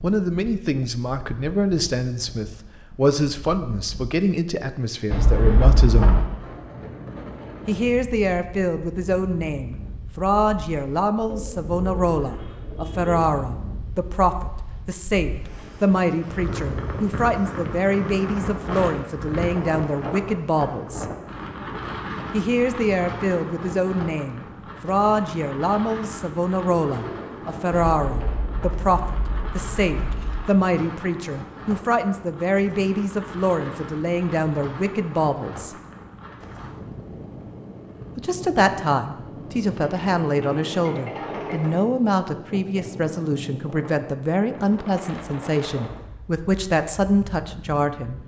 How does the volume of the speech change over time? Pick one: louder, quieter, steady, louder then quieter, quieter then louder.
steady.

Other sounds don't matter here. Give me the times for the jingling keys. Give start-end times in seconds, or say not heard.
5.1-6.2, 27.9-30.4.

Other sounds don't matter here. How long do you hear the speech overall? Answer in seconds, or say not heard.
43 s.